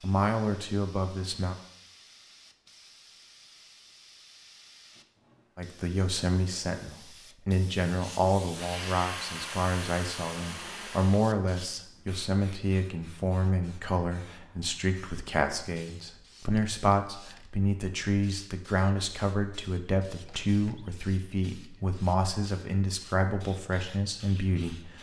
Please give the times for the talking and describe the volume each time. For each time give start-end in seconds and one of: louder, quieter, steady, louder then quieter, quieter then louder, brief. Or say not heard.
0.0-1.6 brief
5.5-24.9 steady.